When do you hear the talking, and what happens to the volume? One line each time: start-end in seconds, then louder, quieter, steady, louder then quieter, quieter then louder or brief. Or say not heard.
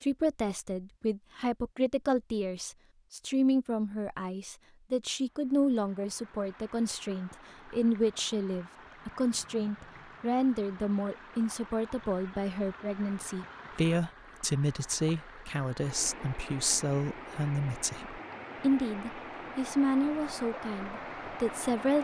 0.0-21.9 steady.